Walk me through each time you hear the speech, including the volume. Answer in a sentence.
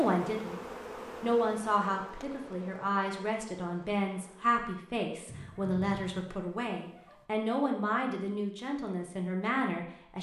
The speech can be heard briefly from 0.0 to 0.6 s; and from 1.2 to 10.1 s, at a steady volume.